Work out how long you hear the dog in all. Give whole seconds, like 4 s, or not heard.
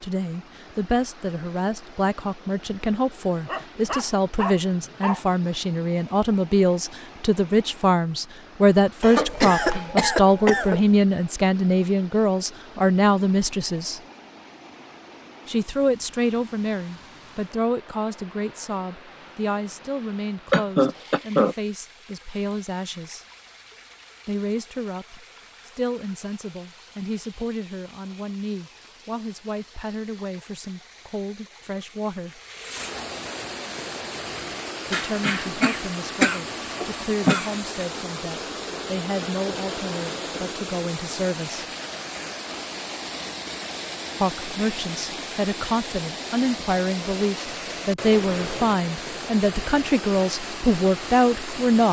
2 s.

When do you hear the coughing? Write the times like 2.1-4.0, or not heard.
9.0-10.8, 20.5-21.6, 34.9-37.5.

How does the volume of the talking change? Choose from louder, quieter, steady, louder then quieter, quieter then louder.
quieter then louder.